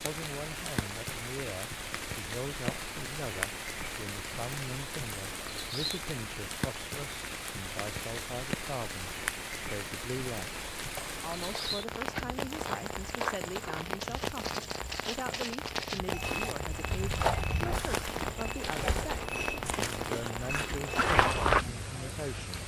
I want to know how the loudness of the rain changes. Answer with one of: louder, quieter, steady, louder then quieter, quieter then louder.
steady.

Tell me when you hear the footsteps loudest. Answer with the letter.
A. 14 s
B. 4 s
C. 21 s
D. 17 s
C.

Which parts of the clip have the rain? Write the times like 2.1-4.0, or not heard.
0.0-22.6.